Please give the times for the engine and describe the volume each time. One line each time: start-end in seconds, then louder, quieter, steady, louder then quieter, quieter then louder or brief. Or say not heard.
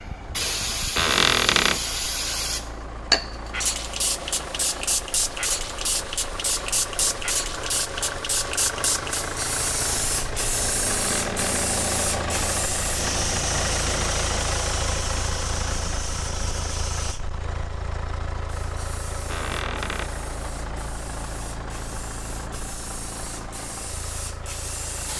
0.0-25.1 louder then quieter.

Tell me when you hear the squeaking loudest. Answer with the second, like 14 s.
1 s.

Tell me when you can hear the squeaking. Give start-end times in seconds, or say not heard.
0.9-1.9, 10.8-11.7, 19.2-20.1.